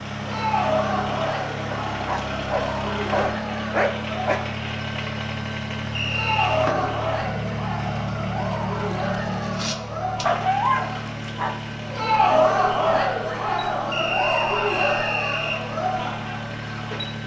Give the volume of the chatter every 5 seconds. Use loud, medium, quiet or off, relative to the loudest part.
medium, medium, loud, medium.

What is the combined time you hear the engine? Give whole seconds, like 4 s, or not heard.
17 s.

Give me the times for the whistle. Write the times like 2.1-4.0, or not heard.
6.0-6.7, 13.9-15.6.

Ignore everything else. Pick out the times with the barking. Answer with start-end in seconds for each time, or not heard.
1.7-4.4, 10.2-11.6.